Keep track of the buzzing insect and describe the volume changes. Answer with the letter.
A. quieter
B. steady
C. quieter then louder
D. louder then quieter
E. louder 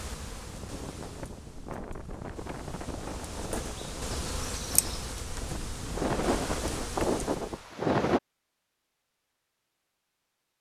E.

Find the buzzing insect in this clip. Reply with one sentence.
The buzzing insect can be heard from 0.0 to 7.7 s.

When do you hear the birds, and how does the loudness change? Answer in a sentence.
The birds can't be heard in this clip.